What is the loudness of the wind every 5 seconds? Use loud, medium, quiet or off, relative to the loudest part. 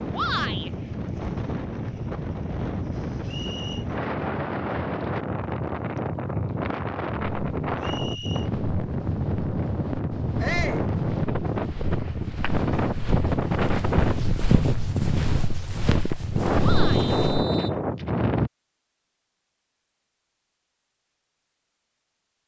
medium, loud, loud, loud, off.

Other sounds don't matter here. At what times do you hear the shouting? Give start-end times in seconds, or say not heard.
0.1-0.7, 10.4-10.8, 16.6-17.1.